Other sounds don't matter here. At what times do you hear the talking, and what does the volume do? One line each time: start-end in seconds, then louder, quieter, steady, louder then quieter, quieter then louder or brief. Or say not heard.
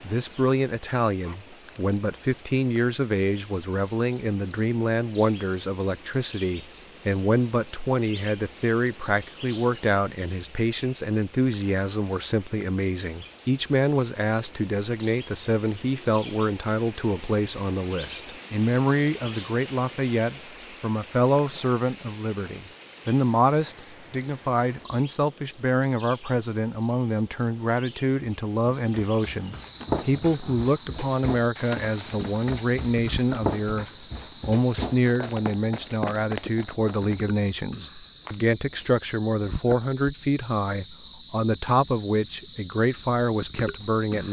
0.0-44.2 steady.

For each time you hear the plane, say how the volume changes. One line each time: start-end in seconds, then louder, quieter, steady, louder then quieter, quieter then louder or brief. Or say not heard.
not heard.